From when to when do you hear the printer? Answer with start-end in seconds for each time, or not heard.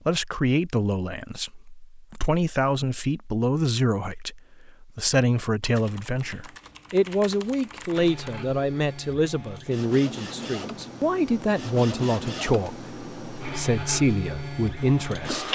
7.9-15.4.